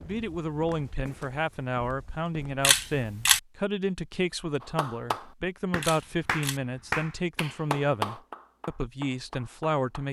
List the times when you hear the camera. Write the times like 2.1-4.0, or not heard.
2.6-3.4, 5.8-6.6.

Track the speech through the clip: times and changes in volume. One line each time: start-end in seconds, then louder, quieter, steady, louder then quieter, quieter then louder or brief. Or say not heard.
0.0-10.0 steady.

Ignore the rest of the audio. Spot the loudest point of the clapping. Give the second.
8 s.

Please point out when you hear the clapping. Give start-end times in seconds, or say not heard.
4.6-10.0.